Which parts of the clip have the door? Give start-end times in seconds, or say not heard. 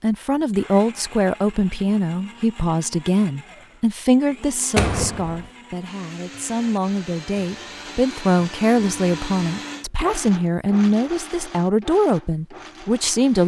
4.8-5.5.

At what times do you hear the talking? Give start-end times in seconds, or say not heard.
0.0-13.4.